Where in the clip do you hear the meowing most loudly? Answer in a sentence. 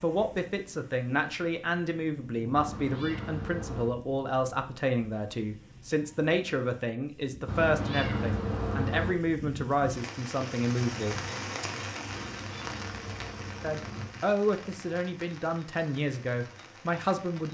The loudest moment of the meowing is at 8 seconds.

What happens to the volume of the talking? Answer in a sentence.
The volume of the talking stays about the same.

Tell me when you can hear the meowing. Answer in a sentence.
The meowing can be heard from 2.5 to 3.9 s, from 7.5 to 9.2 s and from 12.1 to 14.1 s.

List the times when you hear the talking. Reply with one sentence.
The talking can be heard from 0.0 to 11.2 s and from 13.6 to 17.5 s.